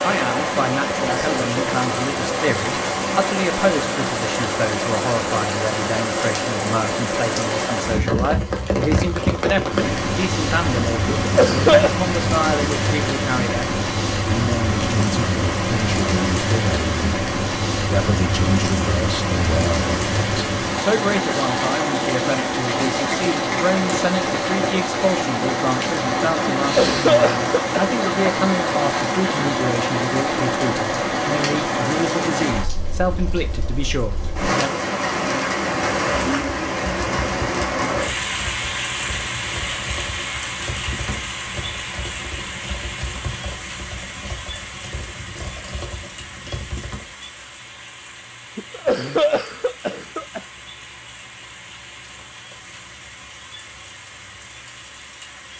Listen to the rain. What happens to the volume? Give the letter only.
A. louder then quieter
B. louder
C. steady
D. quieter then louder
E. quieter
E.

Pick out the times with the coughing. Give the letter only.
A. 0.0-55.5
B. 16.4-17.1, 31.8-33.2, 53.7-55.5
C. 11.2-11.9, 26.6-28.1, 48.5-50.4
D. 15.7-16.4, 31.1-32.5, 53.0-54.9
C.